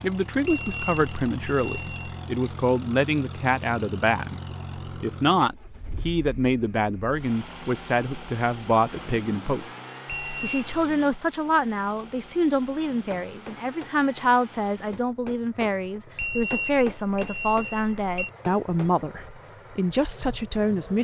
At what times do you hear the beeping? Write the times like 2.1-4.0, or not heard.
0.5-2.2, 10.1-10.7, 16.1-18.3.